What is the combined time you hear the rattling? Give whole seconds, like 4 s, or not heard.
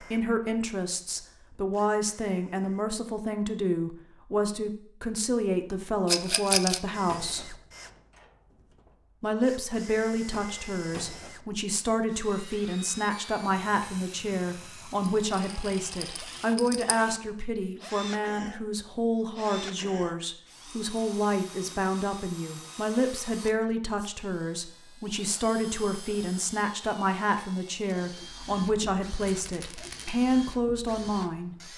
3 s.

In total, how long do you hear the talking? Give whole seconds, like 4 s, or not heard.
30 s.